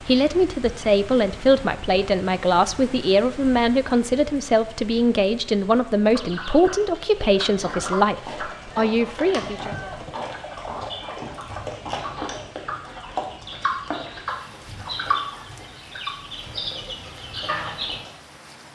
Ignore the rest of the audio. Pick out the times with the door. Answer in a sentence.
You can't hear the door here.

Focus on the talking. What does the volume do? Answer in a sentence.
The volume of the talking stays about the same.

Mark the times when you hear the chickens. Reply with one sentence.
The chickens can be heard from 6.1 to 18.1 s.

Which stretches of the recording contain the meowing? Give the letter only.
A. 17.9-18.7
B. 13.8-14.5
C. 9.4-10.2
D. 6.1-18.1
C.